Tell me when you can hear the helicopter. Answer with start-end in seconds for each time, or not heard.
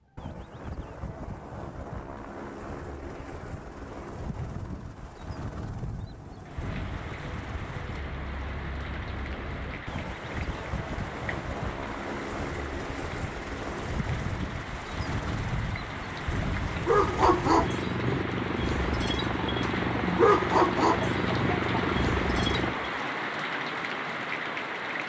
0.0-22.8.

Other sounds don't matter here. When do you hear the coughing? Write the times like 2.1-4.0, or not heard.
not heard.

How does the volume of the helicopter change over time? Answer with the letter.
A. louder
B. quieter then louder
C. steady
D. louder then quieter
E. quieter
A.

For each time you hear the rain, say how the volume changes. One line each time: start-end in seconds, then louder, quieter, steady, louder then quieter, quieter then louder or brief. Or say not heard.
6.5-25.0 louder.